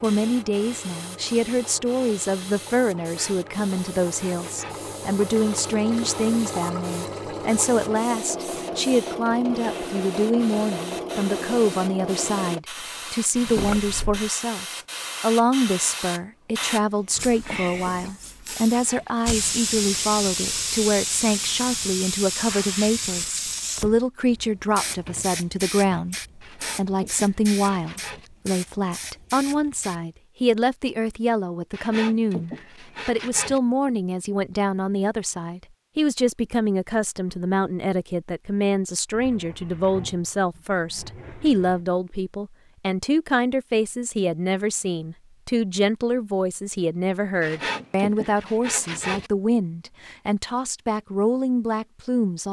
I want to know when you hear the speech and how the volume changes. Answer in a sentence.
The speech can be heard from 0.0 to 52.4 s, at a steady volume.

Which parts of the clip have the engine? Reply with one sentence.
You can hear the engine from 0.0 to 12.6 s.